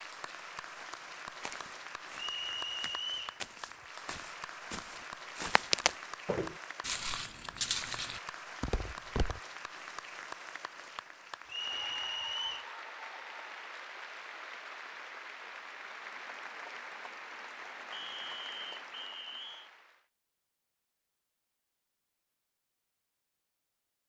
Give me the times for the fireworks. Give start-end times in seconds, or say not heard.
not heard.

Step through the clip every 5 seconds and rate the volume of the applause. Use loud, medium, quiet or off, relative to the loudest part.
loud, loud, loud, loud, off.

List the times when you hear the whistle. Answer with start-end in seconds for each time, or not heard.
2.1-3.4, 11.4-12.7, 17.9-19.7.